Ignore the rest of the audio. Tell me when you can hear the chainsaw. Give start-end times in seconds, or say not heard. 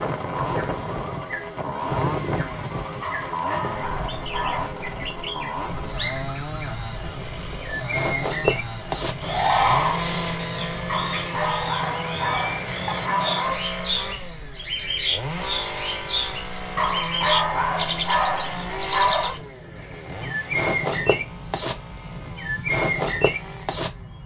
0.0-24.2.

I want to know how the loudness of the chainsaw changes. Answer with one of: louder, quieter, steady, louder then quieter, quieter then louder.
quieter.